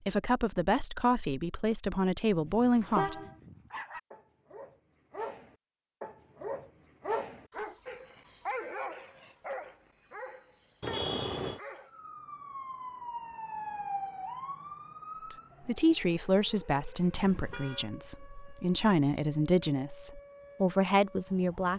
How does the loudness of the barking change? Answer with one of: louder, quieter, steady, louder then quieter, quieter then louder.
louder then quieter.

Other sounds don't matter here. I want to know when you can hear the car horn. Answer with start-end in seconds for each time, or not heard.
2.4-3.4, 10.8-11.6, 17.1-17.9.